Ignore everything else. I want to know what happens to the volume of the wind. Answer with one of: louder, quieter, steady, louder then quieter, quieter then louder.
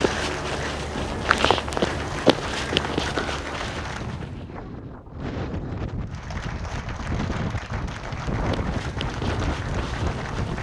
louder.